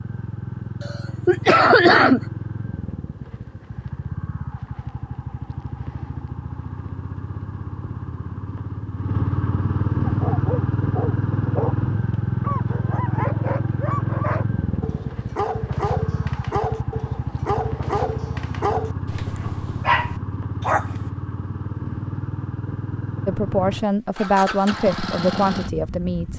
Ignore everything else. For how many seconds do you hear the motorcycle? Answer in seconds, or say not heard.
26 s.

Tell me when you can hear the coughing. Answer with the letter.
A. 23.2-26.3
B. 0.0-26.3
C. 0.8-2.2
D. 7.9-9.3
C.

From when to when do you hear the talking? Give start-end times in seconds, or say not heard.
23.2-26.3.